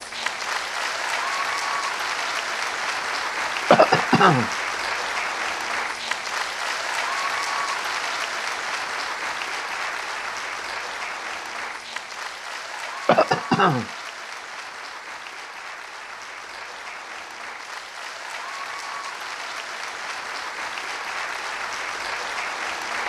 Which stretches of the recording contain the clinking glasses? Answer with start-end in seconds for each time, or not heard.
not heard.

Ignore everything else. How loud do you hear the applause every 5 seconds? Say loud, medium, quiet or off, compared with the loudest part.
loud, loud, medium, medium, loud.